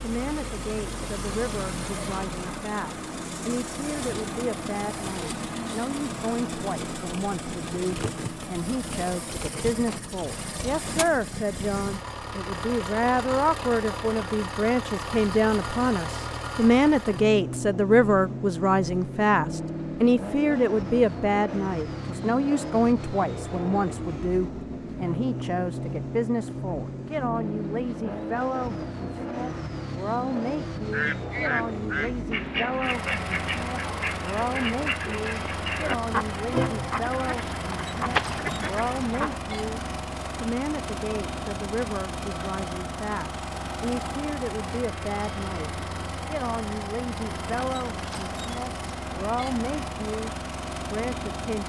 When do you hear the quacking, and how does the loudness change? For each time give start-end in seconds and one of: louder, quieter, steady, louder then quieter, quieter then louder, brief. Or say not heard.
30.8-39.4 steady.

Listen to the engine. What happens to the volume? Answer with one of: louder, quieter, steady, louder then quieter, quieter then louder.
steady.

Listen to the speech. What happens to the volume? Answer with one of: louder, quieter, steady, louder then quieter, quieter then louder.
louder then quieter.